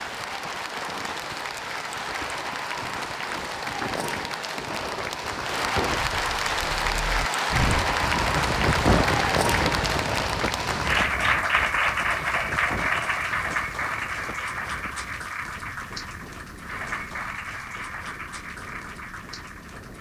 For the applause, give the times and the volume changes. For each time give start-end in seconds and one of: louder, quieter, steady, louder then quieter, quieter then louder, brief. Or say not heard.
0.0-19.9 louder then quieter.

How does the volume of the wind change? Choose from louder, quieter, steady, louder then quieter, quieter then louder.
louder then quieter.